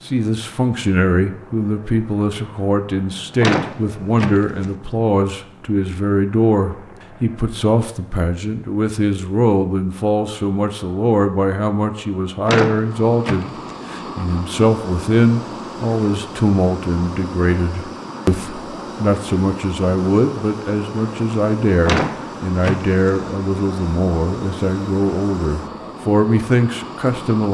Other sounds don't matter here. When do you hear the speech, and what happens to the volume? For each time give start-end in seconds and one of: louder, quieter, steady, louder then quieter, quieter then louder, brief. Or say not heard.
0.1-27.4 steady.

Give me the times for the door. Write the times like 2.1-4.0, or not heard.
3.4-4.7, 12.4-13.8, 21.9-23.1.